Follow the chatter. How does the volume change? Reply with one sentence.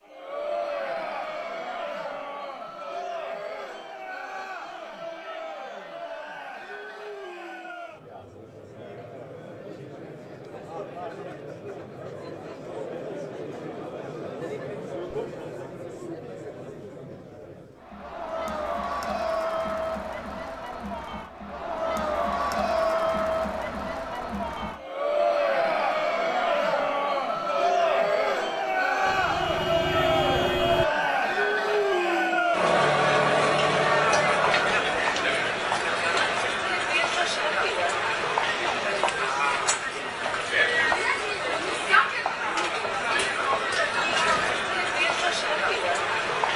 The volume of the chatter goes up.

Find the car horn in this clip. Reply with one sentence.
You can hear the car horn from 29.1 to 30.9 s.